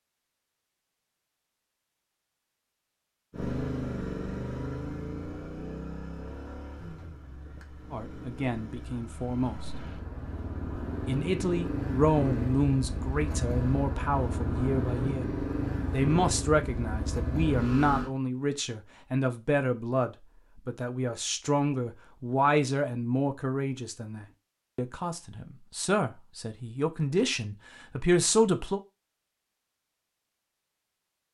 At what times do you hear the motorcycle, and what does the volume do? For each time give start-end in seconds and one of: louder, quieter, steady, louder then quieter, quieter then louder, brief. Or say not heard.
3.3-18.1 quieter then louder.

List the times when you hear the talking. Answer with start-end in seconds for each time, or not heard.
7.9-9.7, 11.1-15.2, 15.9-28.8.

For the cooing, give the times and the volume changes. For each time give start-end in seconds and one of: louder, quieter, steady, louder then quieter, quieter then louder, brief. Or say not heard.
not heard.